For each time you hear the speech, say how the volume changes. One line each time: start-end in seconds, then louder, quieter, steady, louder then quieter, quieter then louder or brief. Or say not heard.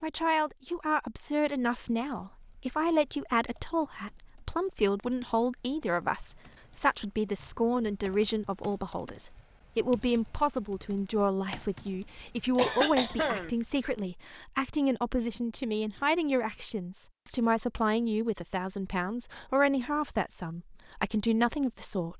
0.0-22.1 steady.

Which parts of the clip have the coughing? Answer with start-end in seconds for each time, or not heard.
12.6-13.5.